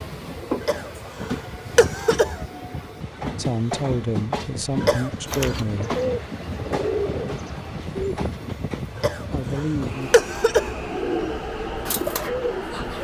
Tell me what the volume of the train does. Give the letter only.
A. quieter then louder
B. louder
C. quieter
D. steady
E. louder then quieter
D.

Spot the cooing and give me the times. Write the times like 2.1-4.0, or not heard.
5.2-8.2, 10.9-13.0.